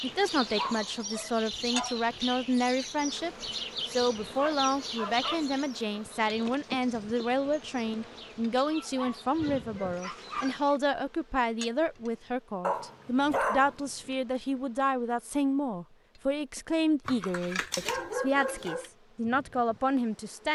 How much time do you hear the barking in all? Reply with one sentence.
The barking can be heard for 9 seconds in total.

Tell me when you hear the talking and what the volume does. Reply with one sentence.
You can hear the talking from 0.0 to 20.4 s, at a steady volume.